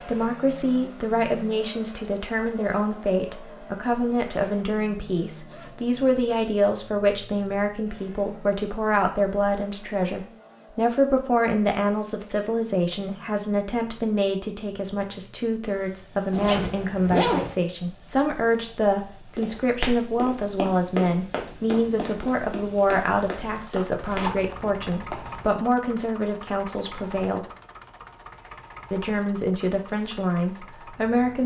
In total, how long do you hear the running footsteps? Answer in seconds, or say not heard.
6 s.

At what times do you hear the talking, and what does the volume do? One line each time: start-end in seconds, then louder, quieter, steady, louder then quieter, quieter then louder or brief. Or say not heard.
0.0-27.4 steady
28.9-31.4 brief.